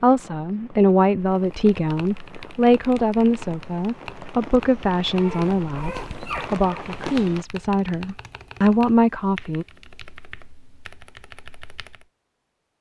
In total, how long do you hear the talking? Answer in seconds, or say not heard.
10 s.